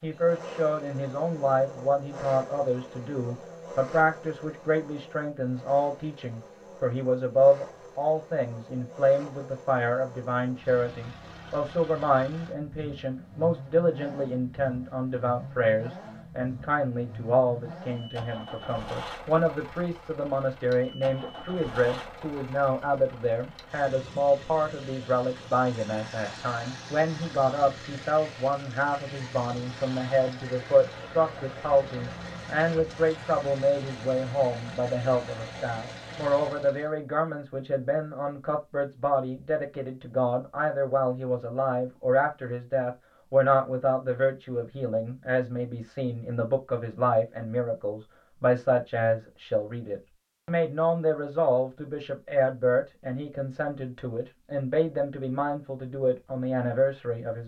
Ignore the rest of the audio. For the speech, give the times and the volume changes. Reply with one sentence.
The speech can be heard from 0.0 to 57.4 s, at a steady volume.